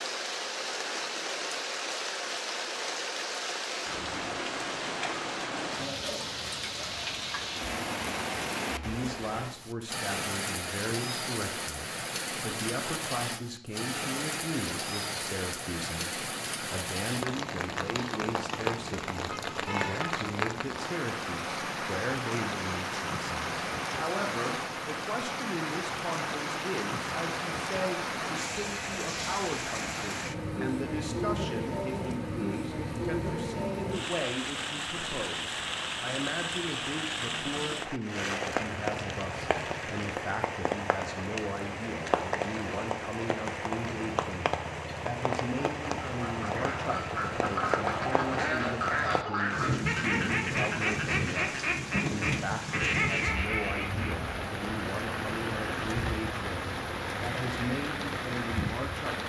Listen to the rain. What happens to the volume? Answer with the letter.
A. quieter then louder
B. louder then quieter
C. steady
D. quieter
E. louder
C.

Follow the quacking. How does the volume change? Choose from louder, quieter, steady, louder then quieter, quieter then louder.
steady.